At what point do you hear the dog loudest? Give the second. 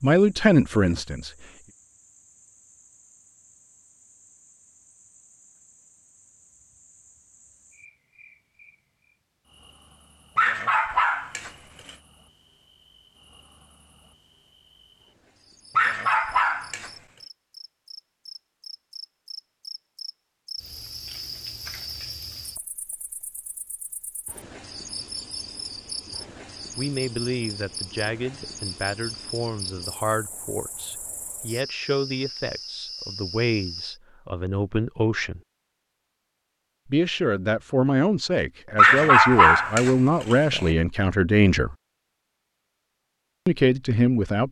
39 s.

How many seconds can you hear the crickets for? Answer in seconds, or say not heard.
34 s.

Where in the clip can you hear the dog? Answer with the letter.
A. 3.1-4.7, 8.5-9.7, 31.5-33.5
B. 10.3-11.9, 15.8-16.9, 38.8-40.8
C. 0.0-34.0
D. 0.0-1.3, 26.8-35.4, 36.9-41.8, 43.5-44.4
B.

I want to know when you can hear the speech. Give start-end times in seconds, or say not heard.
0.0-1.3, 26.8-35.4, 36.9-41.8, 43.5-44.4.